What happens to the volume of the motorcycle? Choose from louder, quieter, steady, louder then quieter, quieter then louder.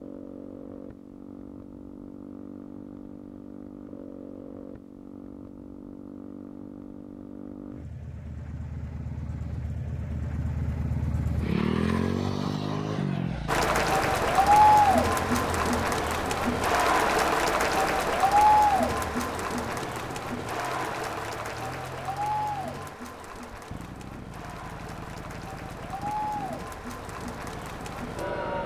louder then quieter.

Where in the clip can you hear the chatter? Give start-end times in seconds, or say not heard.
13.4-28.6.